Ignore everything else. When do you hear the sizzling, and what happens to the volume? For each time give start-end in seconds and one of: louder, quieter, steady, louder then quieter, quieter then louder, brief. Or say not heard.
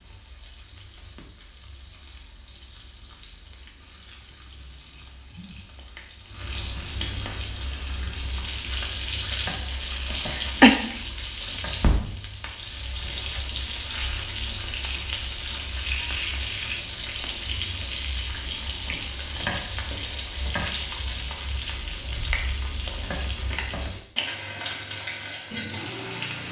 0.0-26.4 louder.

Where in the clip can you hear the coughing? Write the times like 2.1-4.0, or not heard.
10.2-10.8.